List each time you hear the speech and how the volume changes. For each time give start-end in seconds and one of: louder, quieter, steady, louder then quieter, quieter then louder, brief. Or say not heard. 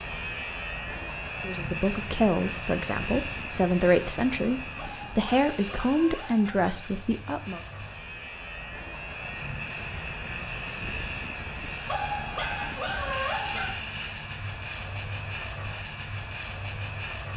1.4-7.6 steady.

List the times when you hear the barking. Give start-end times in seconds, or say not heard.
4.8-6.8, 11.8-13.8.